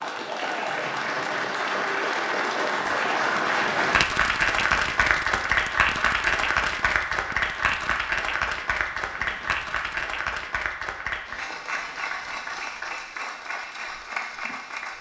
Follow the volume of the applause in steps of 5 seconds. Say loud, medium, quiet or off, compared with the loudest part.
loud, loud, medium.